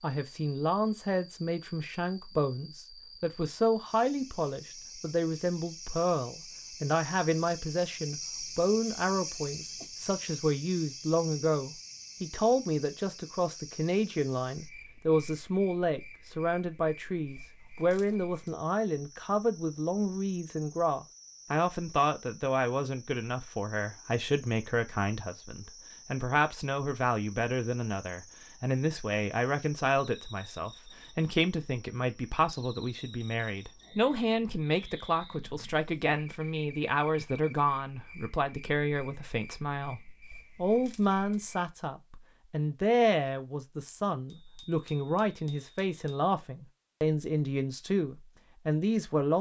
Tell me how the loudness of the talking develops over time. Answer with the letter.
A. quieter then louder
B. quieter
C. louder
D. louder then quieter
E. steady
E.